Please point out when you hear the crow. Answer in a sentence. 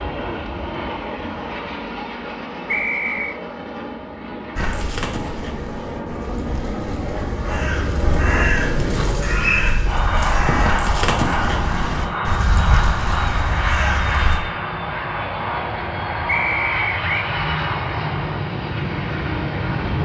You can hear the crow from 4.5 to 14.4 s.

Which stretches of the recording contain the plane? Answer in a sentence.
You can hear the plane from 0.0 to 19.9 s.